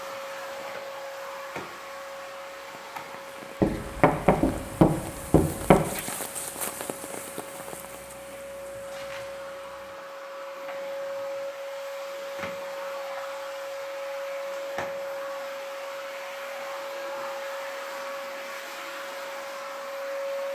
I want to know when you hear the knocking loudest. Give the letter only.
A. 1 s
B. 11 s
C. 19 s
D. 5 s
D.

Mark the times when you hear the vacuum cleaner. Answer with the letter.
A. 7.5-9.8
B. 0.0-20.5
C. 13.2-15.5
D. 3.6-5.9
B.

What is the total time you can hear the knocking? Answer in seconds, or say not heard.
2 s.